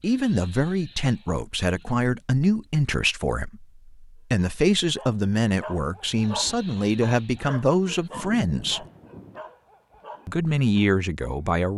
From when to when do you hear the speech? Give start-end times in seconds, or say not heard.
0.0-8.8, 10.2-11.7.